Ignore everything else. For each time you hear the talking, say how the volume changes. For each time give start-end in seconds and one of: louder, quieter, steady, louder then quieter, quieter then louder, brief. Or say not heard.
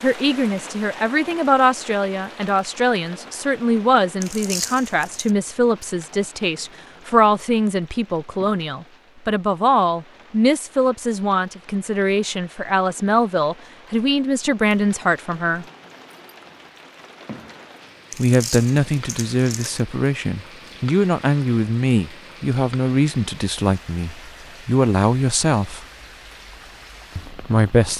0.0-15.7 steady
18.1-25.9 steady
27.1-27.9 brief.